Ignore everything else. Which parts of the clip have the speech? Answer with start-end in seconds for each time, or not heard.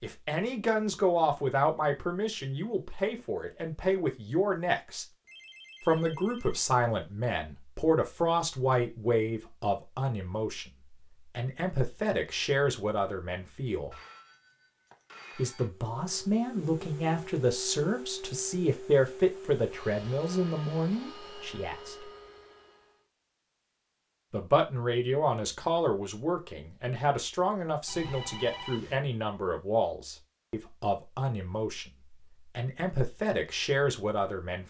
0.0-5.0, 5.8-10.7, 11.3-13.9, 15.3-22.1, 24.3-31.9, 32.5-34.6.